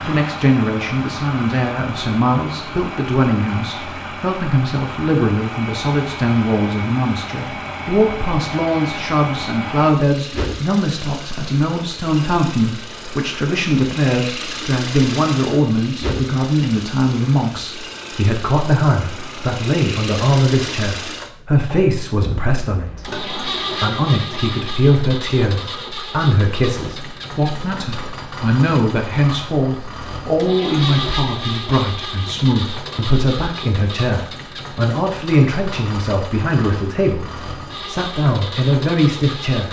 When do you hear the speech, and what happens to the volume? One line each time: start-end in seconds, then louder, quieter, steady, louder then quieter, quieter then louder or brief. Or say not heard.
0.0-39.6 steady.